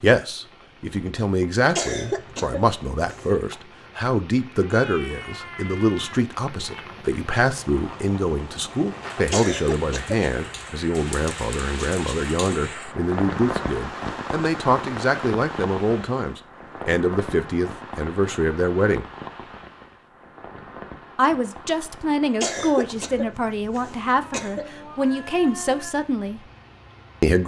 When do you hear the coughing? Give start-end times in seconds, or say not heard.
1.8-3.4, 9.3-10.7, 22.4-24.6.